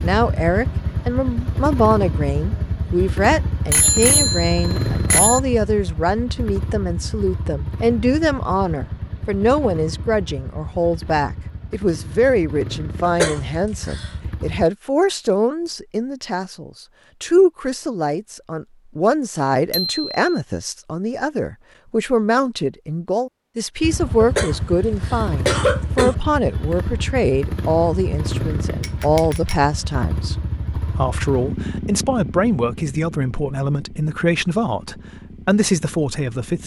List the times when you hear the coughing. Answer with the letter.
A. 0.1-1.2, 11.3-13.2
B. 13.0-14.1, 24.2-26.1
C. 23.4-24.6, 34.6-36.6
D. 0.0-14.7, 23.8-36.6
B.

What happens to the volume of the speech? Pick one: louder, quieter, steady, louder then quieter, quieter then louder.
steady.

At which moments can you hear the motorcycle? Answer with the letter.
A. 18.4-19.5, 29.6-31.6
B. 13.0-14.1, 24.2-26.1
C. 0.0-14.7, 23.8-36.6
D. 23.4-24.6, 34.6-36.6
C.